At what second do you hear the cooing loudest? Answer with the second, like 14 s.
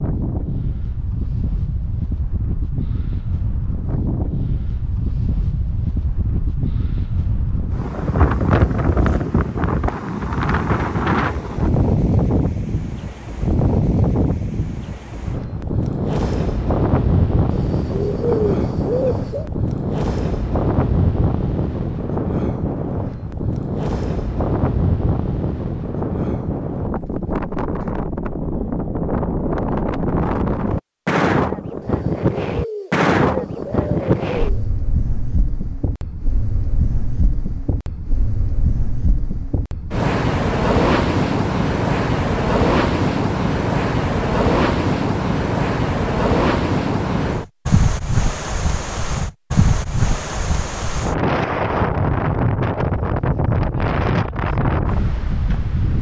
18 s.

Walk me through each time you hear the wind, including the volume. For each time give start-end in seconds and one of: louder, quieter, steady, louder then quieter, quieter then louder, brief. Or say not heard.
0.0-55.9 steady.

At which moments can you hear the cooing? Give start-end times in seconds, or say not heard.
17.5-19.5, 31.8-34.7.